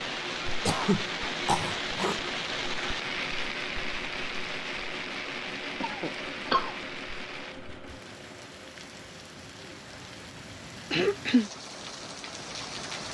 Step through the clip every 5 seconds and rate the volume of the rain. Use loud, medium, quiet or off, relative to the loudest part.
loud, medium, medium.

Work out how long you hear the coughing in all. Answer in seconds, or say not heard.
3 s.